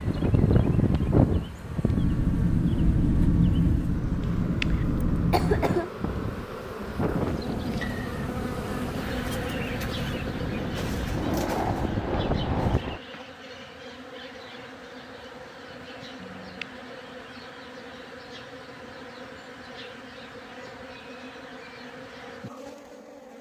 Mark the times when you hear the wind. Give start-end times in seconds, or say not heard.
0.0-13.0.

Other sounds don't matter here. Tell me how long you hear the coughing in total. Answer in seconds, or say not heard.
2 s.